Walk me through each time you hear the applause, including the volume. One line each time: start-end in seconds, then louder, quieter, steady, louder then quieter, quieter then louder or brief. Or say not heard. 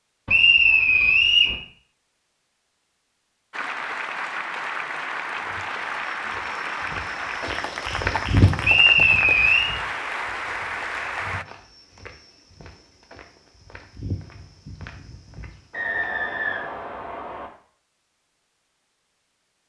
3.5-11.4 steady.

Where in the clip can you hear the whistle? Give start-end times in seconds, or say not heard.
0.2-1.6, 8.6-9.7, 15.7-17.5.